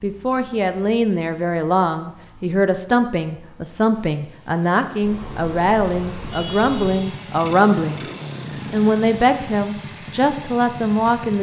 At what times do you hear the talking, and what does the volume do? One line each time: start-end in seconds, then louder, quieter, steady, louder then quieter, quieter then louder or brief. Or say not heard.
0.0-8.1 steady
8.7-11.3 brief.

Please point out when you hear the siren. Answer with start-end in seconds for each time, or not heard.
not heard.